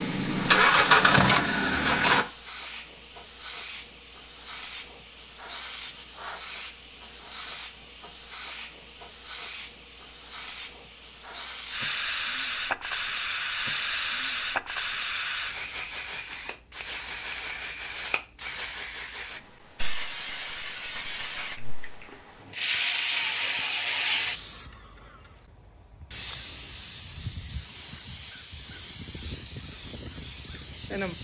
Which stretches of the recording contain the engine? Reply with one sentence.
You can hear the engine from 0.0 to 2.2 s.